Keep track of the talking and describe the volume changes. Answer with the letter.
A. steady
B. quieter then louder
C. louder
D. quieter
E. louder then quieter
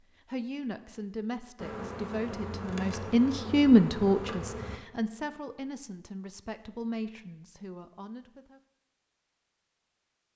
E.